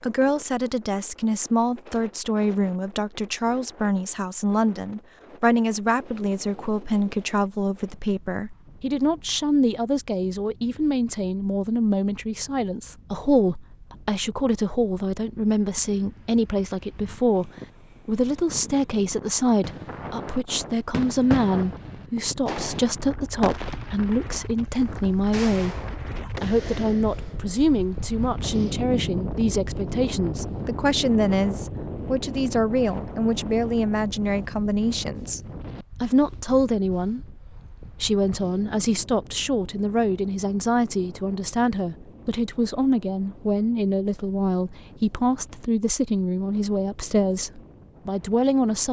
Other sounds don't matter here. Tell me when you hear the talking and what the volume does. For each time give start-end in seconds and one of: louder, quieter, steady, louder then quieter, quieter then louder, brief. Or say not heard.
0.0-48.8 steady.